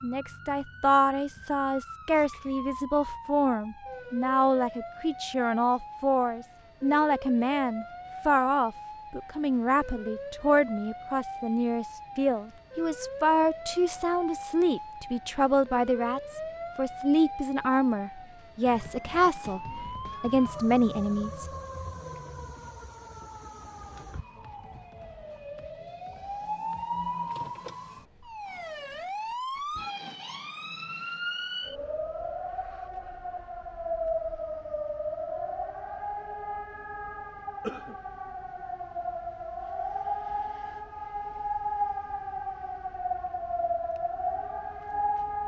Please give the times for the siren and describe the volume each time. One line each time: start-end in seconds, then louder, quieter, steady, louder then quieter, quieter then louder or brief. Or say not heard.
0.0-45.4 louder.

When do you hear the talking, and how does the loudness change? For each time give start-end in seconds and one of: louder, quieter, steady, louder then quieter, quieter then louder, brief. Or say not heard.
0.0-21.4 steady.